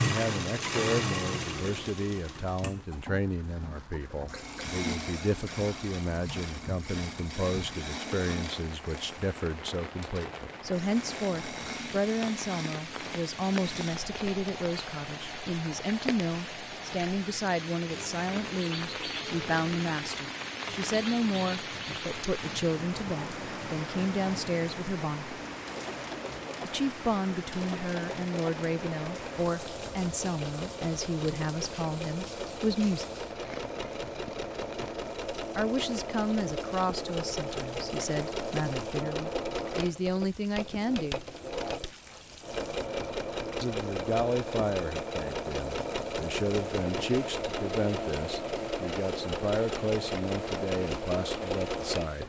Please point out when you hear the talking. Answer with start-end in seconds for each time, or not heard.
0.0-25.4, 26.6-33.0, 35.5-41.2, 43.6-52.2.